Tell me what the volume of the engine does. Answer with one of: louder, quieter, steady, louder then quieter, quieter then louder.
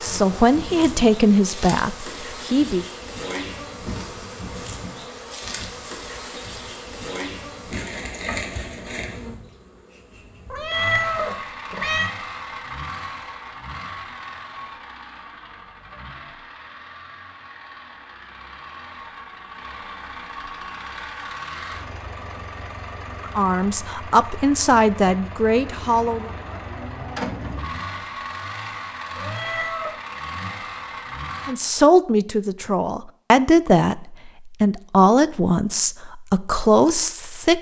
quieter then louder.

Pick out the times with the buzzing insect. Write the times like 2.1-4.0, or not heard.
0.0-11.4.